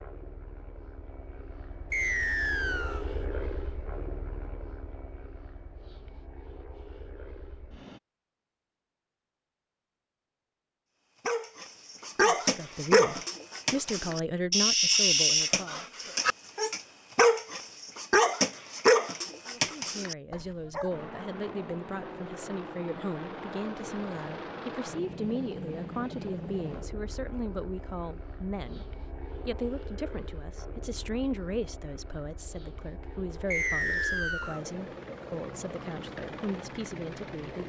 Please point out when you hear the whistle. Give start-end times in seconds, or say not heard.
1.9-3.0, 33.5-34.6.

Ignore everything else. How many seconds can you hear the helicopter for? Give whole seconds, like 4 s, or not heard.
25 s.